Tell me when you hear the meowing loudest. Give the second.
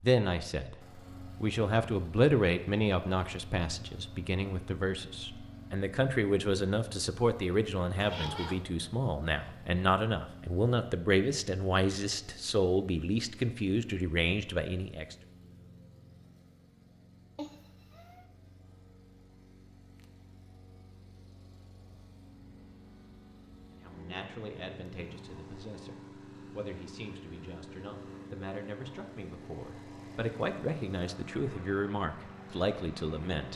8 s.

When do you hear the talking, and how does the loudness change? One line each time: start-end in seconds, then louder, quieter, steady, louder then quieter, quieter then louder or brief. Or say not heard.
0.0-0.8 brief
1.4-15.2 steady
23.7-33.5 louder.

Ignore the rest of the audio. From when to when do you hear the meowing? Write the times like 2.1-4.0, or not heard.
8.0-8.7, 17.4-18.2.